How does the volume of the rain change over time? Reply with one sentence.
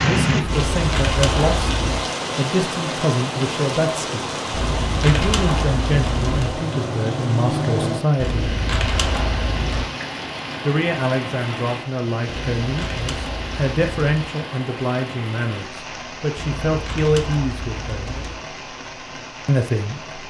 The volume of the rain goes down.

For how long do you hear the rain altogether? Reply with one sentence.
You can hear the rain for 20 seconds altogether.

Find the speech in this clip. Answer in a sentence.
You can hear the speech from 0.0 to 4.4 s, from 5.0 to 8.6 s, from 10.6 to 18.1 s and from 19.4 to 20.1 s.